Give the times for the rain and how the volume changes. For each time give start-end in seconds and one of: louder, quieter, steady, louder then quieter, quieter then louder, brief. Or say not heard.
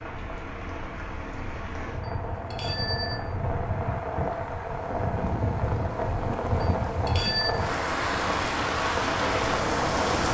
0.0-10.3 louder.